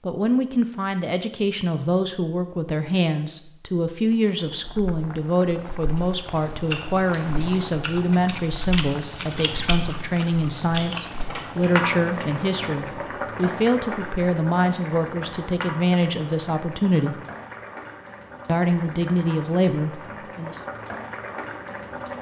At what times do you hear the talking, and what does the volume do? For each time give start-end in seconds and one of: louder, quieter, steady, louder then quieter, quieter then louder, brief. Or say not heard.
0.0-17.2 steady
18.4-20.6 brief.